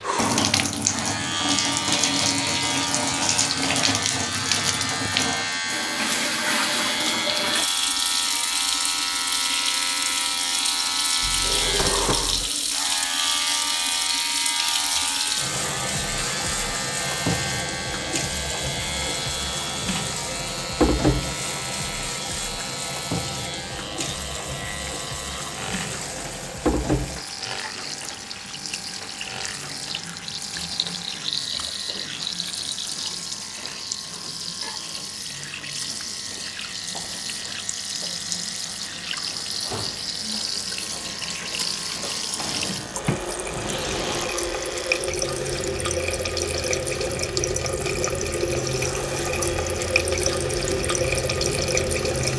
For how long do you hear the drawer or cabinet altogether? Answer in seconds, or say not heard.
3 s.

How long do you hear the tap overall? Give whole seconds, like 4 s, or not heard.
52 s.